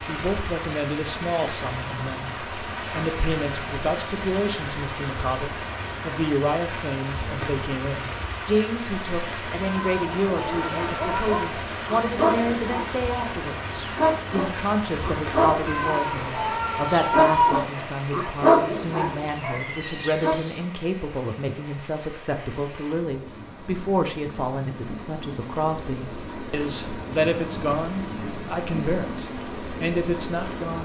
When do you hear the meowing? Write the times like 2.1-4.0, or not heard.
9.7-11.4, 15.7-17.6.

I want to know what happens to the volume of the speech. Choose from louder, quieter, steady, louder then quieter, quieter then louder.
steady.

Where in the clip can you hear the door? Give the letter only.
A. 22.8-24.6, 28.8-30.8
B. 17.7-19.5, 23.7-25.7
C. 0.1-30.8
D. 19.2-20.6
D.